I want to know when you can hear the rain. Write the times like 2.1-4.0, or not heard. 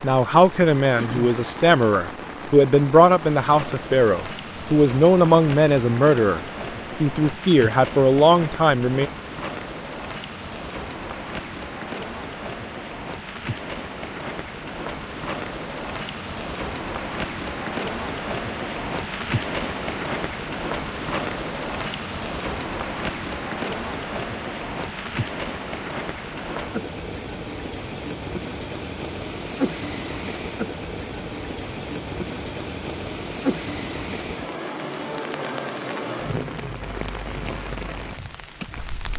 0.0-39.1.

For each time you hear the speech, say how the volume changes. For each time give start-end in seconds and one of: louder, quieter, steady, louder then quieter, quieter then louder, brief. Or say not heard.
0.0-6.4 steady
7.0-9.1 brief.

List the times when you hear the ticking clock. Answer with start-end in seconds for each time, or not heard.
not heard.